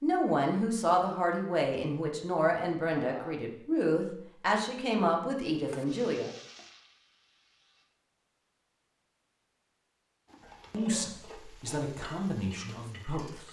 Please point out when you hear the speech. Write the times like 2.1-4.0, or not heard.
0.0-6.3, 10.7-13.4.